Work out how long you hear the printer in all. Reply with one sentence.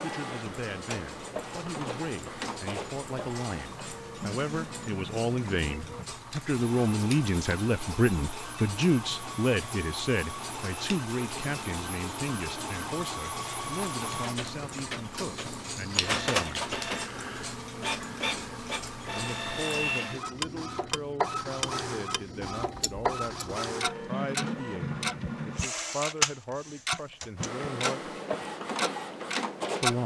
You can hear the printer for 30 seconds altogether.